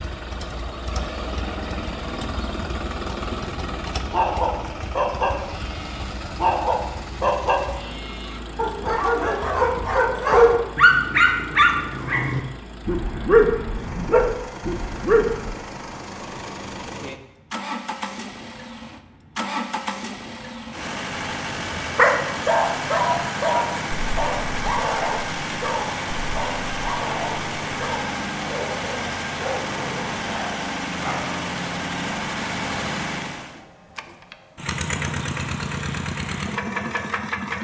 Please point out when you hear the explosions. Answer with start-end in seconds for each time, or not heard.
not heard.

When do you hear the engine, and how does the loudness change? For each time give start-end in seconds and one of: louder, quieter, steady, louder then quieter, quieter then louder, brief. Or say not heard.
0.0-37.5 quieter then louder.